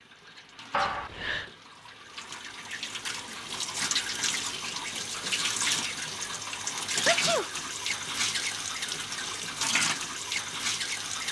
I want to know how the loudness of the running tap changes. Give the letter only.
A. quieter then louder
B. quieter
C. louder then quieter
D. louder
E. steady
D.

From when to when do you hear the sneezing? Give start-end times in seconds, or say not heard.
0.7-1.5, 7.0-7.5.